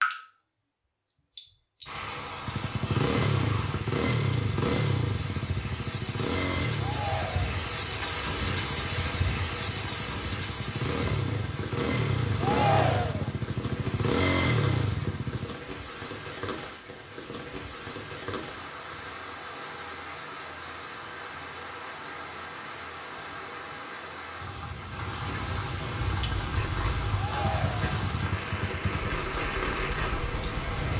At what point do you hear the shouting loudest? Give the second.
13 s.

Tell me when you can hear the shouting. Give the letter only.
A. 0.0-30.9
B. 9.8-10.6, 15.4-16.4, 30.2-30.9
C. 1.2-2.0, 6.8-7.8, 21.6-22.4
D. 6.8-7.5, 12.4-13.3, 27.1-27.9
D.